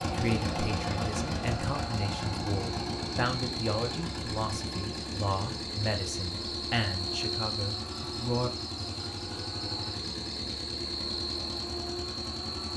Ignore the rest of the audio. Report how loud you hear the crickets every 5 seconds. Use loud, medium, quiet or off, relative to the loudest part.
medium, loud, loud.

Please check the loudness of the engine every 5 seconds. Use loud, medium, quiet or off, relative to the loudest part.
loud, medium, medium.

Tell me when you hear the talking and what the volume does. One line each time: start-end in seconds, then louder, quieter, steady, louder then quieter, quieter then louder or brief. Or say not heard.
0.0-8.5 steady.